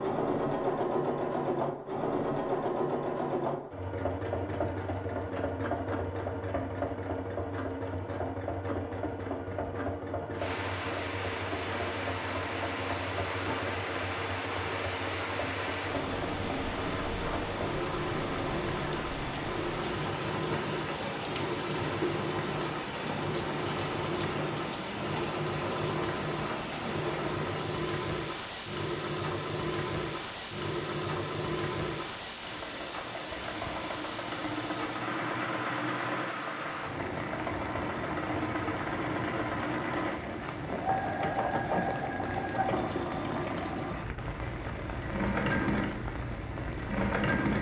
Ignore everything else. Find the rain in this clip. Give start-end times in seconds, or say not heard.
10.3-47.5.